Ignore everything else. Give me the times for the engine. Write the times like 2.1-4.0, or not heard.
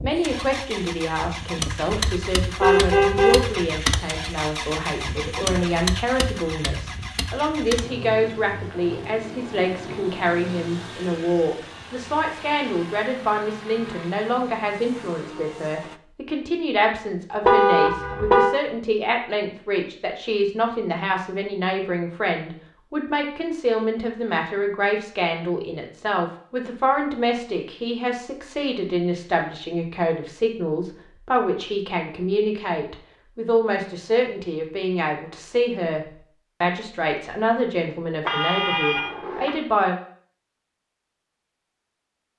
0.0-16.0.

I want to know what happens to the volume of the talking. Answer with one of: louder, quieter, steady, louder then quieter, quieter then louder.
steady.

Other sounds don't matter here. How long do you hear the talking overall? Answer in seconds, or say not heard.
40 s.